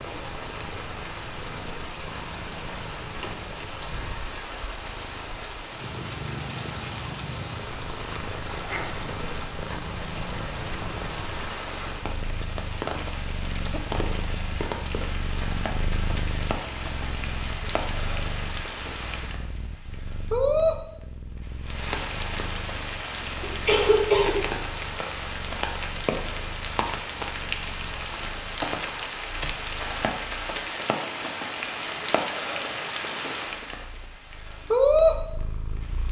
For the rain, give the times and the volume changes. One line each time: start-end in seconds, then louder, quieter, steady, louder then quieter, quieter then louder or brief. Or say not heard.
0.0-36.0 louder.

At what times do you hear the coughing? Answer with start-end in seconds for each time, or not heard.
23.4-24.9.